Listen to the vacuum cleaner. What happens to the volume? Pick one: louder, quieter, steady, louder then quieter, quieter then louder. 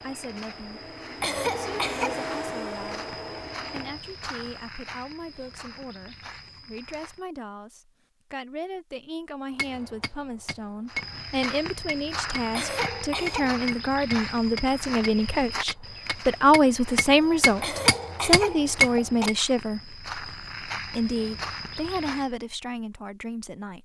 louder then quieter.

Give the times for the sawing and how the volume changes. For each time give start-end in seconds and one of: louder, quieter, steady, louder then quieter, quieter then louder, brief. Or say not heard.
not heard.